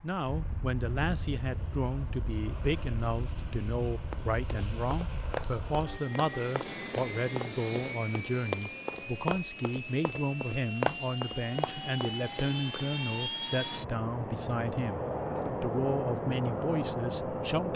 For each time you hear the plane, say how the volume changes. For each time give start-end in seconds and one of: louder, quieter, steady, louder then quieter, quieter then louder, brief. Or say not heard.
0.0-17.7 louder.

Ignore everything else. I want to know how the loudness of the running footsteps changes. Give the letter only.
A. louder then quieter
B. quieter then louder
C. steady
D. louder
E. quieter
D.